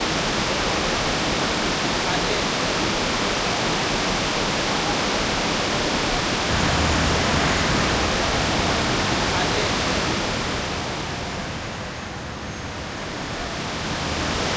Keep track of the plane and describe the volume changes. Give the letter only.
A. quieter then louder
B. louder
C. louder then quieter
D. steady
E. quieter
E.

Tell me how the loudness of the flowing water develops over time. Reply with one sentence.
The volume of the flowing water goes down.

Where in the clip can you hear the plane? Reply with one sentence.
You can hear the plane from 6.5 to 14.5 s.